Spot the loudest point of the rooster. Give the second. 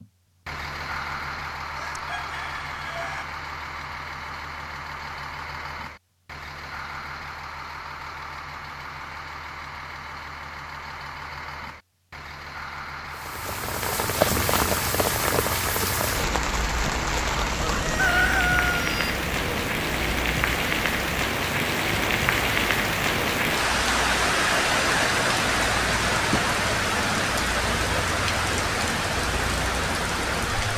18 s.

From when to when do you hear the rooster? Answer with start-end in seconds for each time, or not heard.
1.8-3.2, 17.6-19.1.